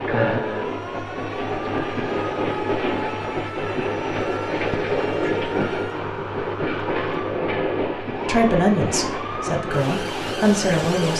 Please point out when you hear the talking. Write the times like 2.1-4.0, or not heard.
8.2-11.1.